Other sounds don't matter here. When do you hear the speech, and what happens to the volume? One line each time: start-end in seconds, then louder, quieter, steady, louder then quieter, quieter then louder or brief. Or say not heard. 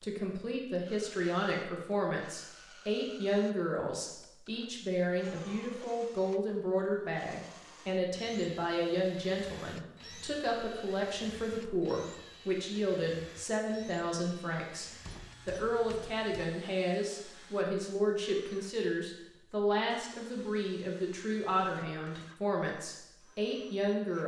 0.0-24.2 steady.